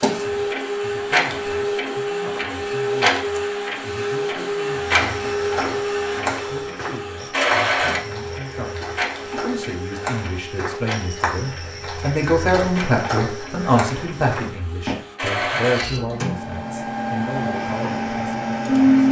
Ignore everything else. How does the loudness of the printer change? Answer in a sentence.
The loudness of the printer goes down, then up.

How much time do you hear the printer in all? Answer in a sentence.
You can hear the printer for 19 seconds altogether.